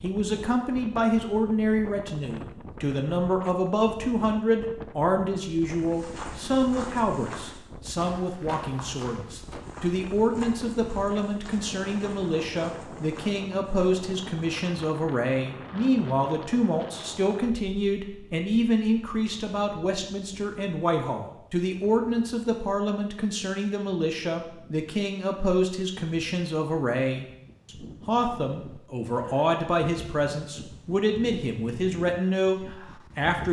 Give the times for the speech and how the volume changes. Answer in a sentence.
The speech can be heard from 0.0 to 33.4 s, at a steady volume.